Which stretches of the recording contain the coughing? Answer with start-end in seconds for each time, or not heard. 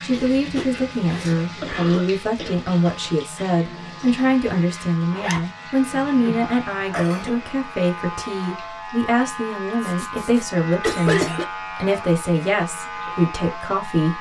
1.6-2.5, 5.9-7.4, 10.8-11.4.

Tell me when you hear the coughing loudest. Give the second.
11 s.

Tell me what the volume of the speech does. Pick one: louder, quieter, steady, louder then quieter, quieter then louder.
steady.